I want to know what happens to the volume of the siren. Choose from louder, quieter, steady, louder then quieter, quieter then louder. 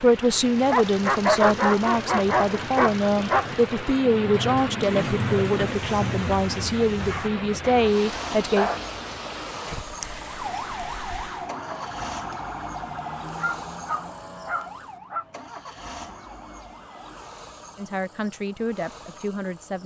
quieter.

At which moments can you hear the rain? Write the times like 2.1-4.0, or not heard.
0.0-11.5.